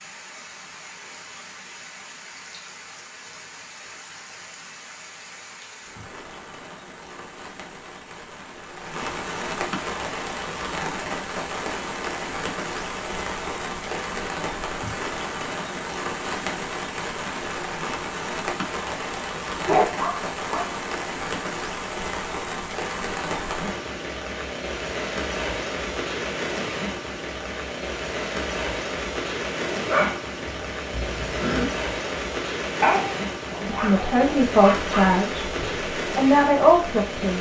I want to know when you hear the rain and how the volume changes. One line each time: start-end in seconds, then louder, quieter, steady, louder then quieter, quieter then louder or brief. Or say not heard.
0.0-37.3 louder.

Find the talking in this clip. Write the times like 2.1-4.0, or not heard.
33.6-37.3.